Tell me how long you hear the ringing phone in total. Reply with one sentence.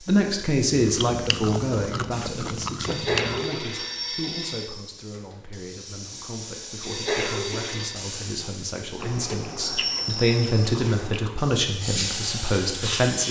You can hear the ringing phone for 3 seconds altogether.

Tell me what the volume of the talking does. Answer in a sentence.
The loudness of the talking goes down, then up.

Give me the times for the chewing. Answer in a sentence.
The chewing can be heard from 0.7 to 3.5 s and from 9.0 to 11.3 s.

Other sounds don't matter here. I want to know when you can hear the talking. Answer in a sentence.
You can hear the talking from 0.0 to 13.2 s.